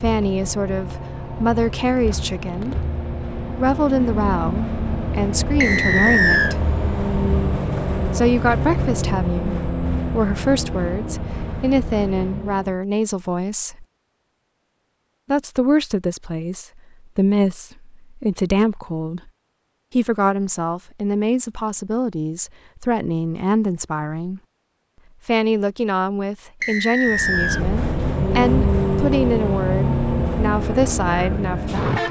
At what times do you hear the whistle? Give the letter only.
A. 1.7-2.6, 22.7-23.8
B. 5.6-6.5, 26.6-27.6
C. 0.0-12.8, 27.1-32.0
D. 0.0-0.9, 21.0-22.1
B.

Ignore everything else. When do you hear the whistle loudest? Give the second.
6 s.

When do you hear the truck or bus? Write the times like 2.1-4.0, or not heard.
0.0-12.8, 27.1-32.0.